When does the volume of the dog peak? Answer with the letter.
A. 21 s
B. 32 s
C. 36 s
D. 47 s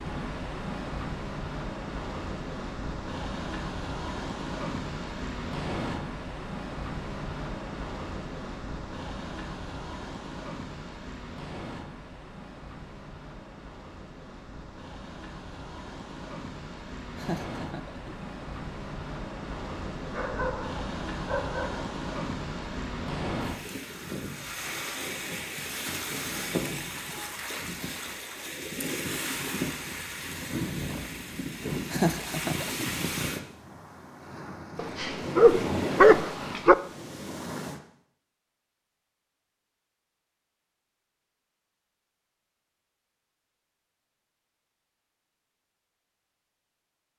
C.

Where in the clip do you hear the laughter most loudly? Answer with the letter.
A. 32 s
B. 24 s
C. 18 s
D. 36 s
A.